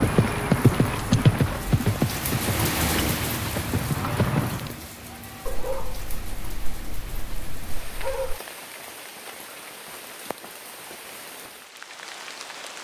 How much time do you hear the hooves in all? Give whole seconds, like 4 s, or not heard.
5 s.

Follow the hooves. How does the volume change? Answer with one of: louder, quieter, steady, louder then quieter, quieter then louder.
quieter then louder.